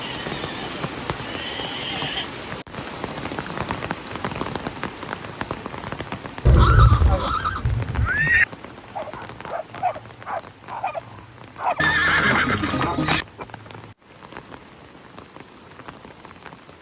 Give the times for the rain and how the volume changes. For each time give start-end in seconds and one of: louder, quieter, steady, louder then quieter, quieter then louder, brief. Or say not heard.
0.0-16.7 quieter.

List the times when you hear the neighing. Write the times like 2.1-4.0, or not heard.
0.0-2.3, 6.5-8.4, 11.8-13.2.